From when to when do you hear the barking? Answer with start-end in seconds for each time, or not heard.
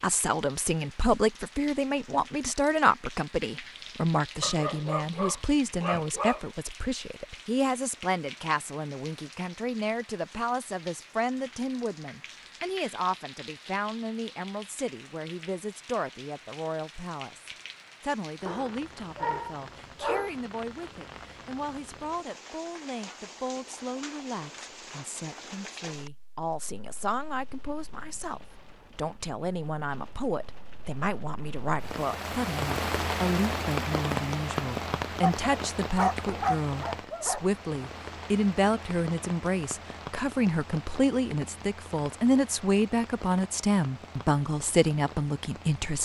4.4-6.5, 18.4-20.3, 35.2-37.5.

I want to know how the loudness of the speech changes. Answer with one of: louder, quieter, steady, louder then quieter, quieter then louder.
quieter then louder.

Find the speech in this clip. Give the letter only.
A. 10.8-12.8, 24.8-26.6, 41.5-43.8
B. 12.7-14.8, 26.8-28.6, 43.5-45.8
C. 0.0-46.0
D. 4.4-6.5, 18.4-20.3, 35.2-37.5
C.